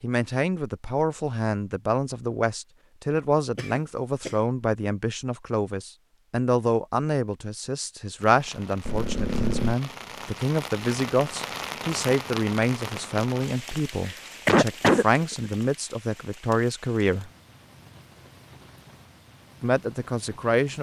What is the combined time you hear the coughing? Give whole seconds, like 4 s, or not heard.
3 s.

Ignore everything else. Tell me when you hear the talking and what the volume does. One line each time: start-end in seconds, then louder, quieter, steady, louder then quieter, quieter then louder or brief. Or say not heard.
0.0-17.3 steady
19.6-20.7 brief.